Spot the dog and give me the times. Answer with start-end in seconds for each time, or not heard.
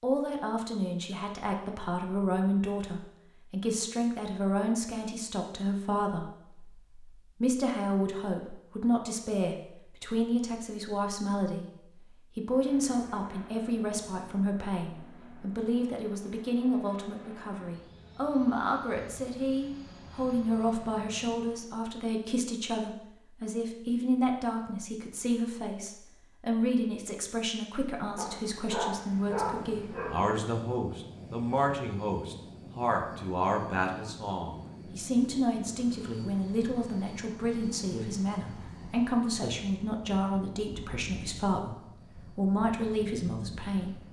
28.1-30.4.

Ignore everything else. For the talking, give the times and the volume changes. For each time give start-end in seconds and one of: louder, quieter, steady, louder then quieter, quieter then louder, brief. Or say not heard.
0.0-44.0 steady.